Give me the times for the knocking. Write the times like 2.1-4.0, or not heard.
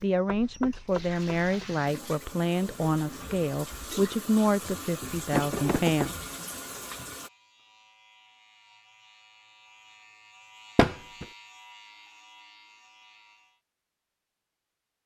0.2-1.6, 5.3-6.3, 10.8-11.2.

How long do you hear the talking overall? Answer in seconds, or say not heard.
6 s.